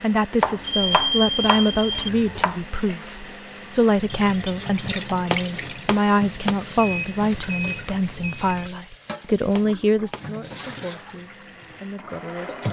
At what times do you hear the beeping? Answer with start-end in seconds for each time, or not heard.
0.6-2.1, 6.8-8.7.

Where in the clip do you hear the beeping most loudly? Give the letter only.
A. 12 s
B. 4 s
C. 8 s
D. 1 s
D.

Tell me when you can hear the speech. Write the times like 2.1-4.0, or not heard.
0.0-12.6.